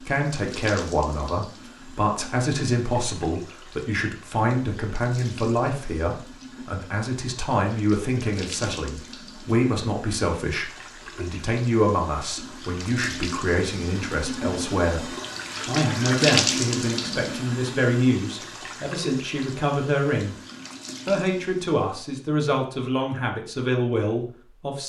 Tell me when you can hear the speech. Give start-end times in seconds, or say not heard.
0.0-20.4, 21.1-24.8.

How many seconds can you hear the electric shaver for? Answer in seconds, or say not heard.
not heard.